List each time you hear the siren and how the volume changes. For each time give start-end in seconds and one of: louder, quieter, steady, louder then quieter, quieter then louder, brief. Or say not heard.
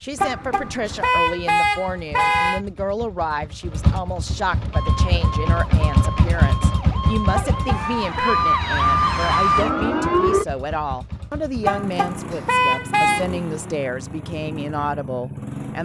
4.7-10.4 louder.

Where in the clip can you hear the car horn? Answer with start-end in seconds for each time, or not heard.
0.1-2.6, 7.3-8.4, 11.6-13.2.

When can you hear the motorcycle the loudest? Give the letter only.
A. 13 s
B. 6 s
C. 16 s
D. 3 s
B.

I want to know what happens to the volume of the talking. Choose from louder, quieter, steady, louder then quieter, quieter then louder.
steady.